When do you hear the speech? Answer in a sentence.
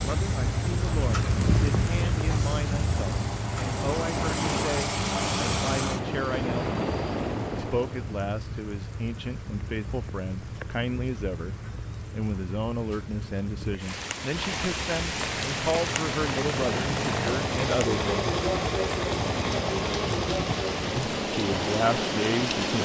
The speech can be heard from 0.0 to 6.7 s, from 7.5 to 18.4 s and from 20.9 to 22.8 s.